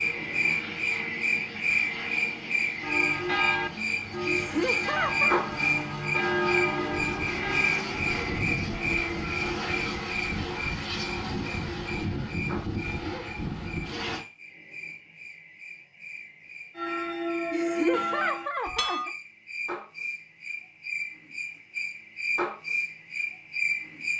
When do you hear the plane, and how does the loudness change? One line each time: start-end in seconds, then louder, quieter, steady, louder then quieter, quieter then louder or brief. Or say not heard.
0.0-14.2 louder.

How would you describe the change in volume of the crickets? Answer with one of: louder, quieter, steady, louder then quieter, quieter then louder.
quieter then louder.